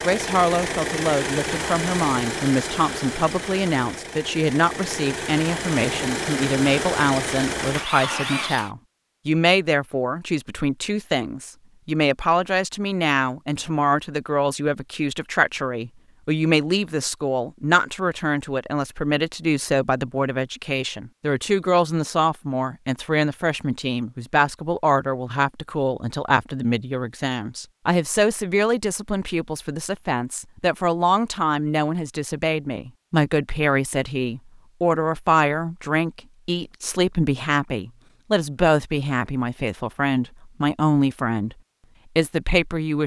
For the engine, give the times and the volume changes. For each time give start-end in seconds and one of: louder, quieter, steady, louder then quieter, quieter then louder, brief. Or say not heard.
0.0-8.7 quieter then louder.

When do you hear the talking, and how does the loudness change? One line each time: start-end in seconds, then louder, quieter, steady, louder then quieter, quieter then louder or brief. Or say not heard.
0.0-41.5 steady
42.1-43.0 brief.